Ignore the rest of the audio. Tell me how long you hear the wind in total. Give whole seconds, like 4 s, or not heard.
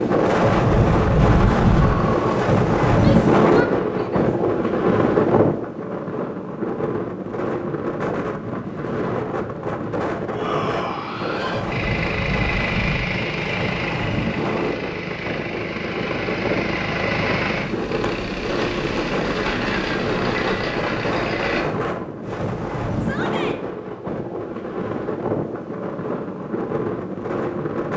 28 s.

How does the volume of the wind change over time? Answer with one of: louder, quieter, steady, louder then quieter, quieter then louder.
quieter.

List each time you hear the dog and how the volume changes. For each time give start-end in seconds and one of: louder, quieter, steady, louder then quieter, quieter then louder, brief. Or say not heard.
not heard.